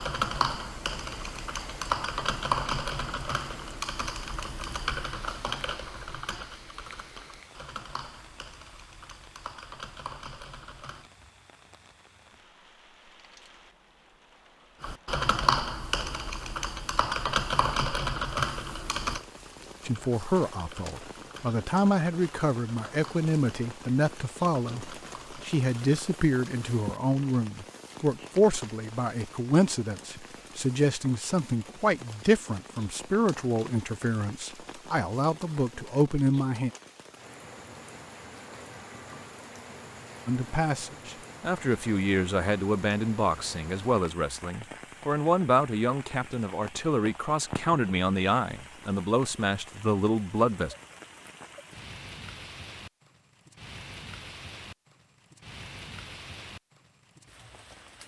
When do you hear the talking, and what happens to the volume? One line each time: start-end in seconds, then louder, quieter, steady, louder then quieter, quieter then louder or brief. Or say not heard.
19.9-36.7 steady
40.2-50.8 steady.